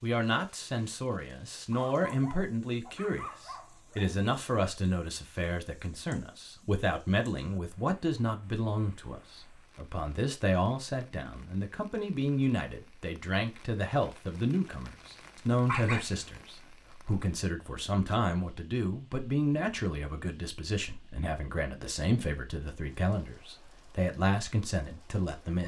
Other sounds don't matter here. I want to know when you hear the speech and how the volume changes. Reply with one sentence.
You can hear the speech from 0.0 to 25.6 s, at a steady volume.